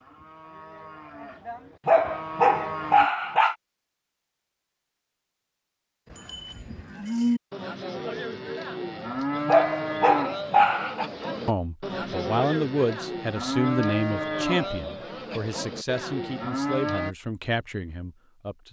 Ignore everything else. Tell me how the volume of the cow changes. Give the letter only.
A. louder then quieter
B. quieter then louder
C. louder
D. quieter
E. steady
C.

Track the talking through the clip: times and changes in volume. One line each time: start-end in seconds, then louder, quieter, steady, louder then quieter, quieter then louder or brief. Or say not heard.
11.4-18.6 quieter.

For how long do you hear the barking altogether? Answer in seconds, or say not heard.
3 s.